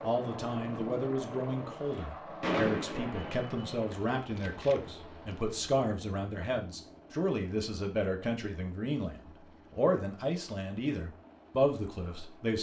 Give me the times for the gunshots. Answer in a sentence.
The gunshots can be heard from 2.4 to 5.5 s.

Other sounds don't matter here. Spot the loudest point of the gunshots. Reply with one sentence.
The volume of the gunshots peaks at 3 seconds.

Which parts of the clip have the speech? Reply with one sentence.
You can hear the speech from 0.0 to 12.5 s.